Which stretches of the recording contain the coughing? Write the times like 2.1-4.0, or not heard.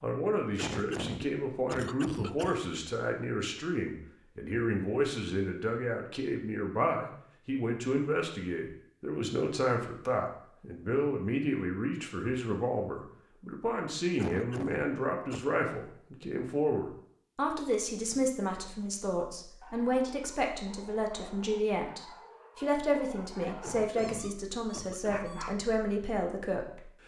0.6-2.7, 14.2-15.4, 23.6-25.3.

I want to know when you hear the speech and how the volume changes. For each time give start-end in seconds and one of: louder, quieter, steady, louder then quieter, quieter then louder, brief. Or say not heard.
0.0-27.0 steady.